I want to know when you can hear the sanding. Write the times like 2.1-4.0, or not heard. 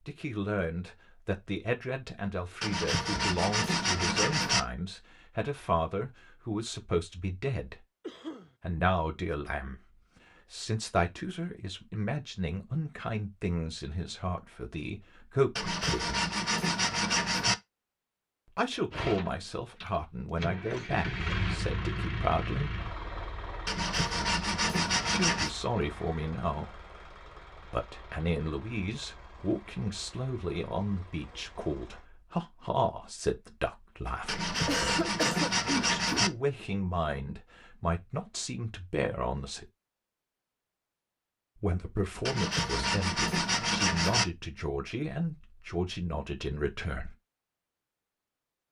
2.6-4.6, 15.6-17.6, 23.6-25.5, 34.2-36.3, 42.2-44.2.